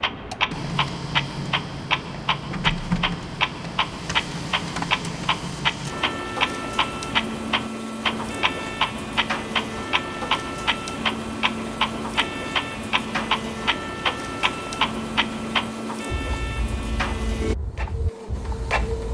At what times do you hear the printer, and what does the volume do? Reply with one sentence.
You can hear the printer from 0.0 to 19.0 s, at a steady volume.